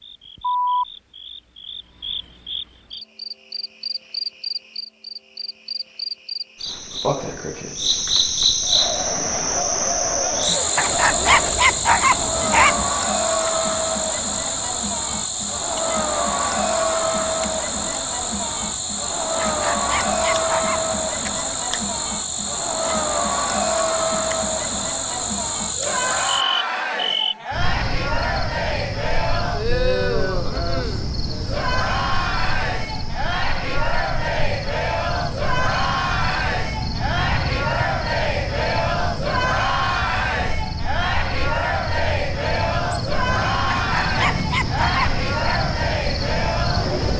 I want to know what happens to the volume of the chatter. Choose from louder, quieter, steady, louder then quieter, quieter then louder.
steady.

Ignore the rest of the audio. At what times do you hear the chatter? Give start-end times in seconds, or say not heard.
8.6-47.1.